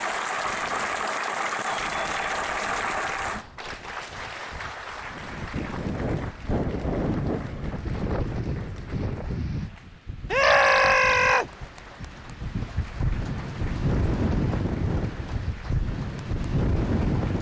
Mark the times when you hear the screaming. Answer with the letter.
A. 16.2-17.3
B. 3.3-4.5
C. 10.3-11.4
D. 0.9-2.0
C.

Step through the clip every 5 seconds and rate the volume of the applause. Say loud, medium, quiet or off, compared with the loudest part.
loud, quiet, quiet, quiet.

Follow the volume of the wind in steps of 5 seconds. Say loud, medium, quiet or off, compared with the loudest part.
quiet, loud, loud, loud.